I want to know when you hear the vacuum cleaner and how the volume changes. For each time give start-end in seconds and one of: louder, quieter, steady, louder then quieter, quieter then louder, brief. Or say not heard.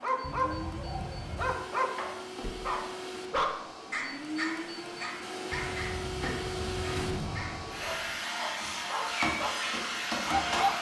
0.0-10.7 louder.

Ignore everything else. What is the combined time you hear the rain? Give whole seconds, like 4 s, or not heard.
not heard.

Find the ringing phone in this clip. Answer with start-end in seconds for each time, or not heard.
0.2-1.6, 5.5-7.0.